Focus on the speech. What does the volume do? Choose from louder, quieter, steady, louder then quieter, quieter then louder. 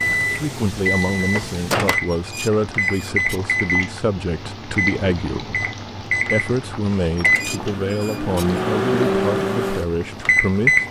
steady.